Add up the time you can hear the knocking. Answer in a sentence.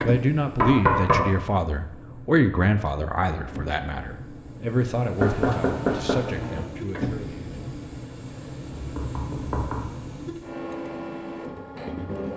You can hear the knocking for 3 seconds altogether.